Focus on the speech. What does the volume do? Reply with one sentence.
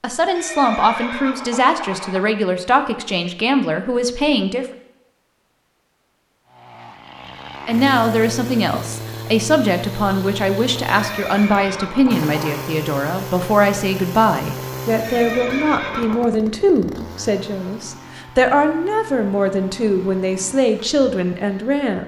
The volume of the speech stays about the same.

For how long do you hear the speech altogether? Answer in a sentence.
You can hear the speech for 19 seconds altogether.